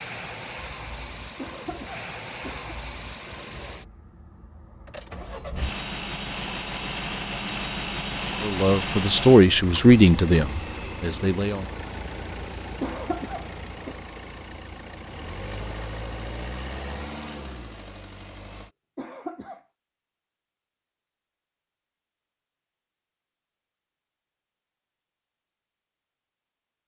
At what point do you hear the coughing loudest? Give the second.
13 s.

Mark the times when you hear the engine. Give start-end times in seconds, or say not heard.
0.0-18.7.